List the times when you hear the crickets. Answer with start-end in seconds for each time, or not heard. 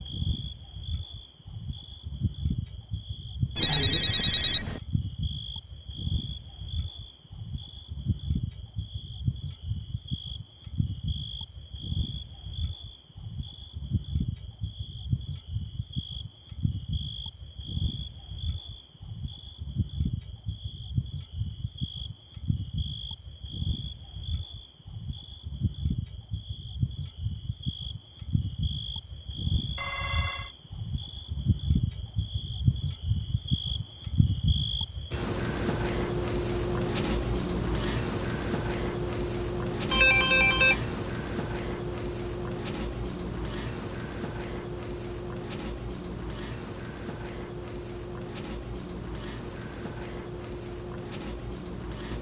0.0-52.1.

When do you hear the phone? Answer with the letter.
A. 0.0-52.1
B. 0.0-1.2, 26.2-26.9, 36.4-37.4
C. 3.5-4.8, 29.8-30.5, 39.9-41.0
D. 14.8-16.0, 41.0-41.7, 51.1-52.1
C.